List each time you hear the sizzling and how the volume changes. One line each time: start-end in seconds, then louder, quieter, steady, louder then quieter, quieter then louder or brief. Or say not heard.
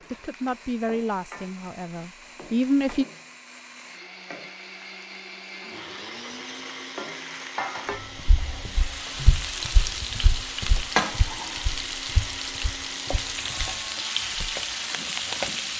0.0-15.7 louder.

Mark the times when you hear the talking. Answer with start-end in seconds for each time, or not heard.
0.1-3.0.